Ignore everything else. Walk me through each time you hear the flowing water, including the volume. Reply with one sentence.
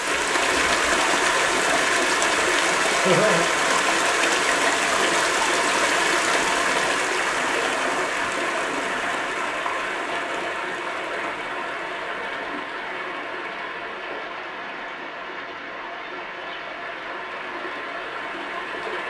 You can hear the flowing water from 0.0 to 19.0 s, getting quieter.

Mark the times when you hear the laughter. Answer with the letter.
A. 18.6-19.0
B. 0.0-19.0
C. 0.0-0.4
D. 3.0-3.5
D.